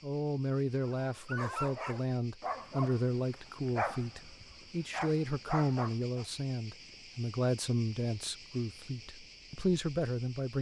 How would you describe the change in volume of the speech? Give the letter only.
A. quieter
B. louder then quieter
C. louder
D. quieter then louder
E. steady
E.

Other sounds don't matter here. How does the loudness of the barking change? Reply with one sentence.
The volume of the barking goes down, then up.